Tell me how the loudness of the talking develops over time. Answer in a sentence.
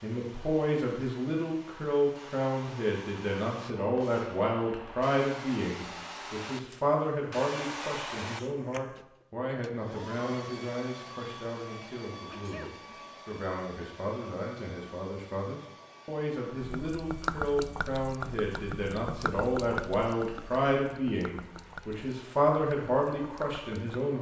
The loudness of the talking goes down, then up.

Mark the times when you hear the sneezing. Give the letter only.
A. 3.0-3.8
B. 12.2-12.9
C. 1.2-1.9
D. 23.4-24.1
B.